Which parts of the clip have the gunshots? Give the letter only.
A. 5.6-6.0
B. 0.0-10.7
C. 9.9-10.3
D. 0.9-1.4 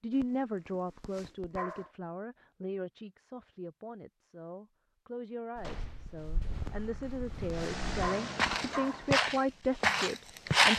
A.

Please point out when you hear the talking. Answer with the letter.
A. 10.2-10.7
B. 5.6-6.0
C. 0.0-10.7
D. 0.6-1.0
C.